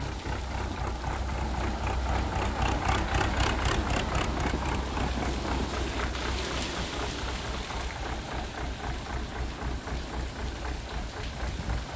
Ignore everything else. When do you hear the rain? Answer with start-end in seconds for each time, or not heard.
0.0-11.9.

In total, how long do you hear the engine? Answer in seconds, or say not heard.
12 s.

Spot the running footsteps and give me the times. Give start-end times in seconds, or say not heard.
not heard.